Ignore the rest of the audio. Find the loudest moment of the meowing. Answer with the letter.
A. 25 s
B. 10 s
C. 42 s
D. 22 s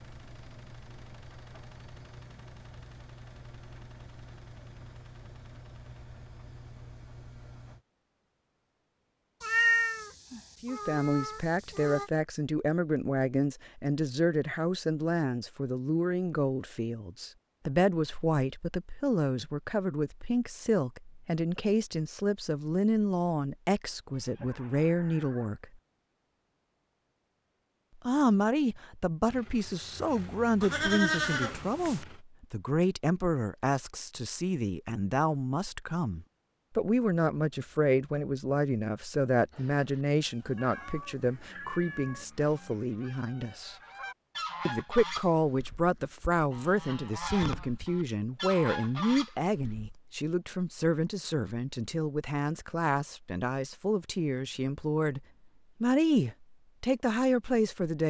B.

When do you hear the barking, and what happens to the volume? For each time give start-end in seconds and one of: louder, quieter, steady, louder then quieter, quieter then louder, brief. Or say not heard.
not heard.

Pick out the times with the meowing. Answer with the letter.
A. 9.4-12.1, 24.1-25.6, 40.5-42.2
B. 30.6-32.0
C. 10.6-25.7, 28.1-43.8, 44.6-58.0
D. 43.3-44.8
A.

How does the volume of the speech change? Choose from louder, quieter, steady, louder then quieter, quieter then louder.
steady.